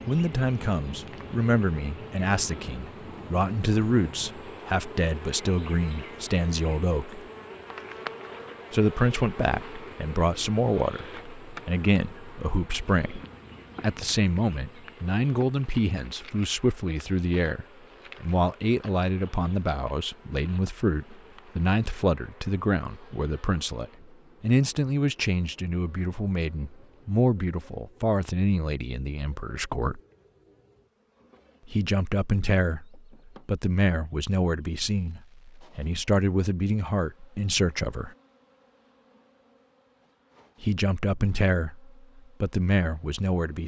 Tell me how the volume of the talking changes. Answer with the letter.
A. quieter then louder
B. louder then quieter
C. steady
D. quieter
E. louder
C.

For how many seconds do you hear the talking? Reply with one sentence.
You can hear the talking for 37 seconds altogether.